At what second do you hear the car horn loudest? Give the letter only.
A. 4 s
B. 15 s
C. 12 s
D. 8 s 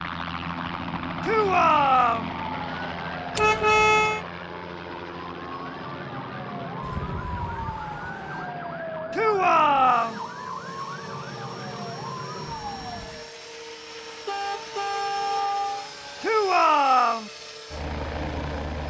A.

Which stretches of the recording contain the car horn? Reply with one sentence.
The car horn can be heard from 3.4 to 4.2 s, from 6.8 to 8.6 s and from 14.2 to 15.9 s.